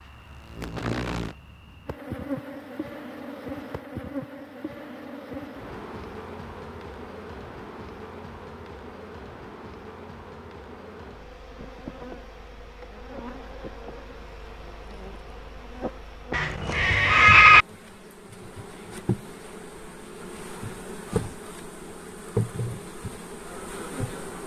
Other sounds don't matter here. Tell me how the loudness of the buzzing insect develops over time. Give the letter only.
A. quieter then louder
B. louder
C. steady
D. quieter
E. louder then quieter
A.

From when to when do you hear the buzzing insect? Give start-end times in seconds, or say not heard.
0.0-24.4.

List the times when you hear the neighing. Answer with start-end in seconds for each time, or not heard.
16.3-17.6.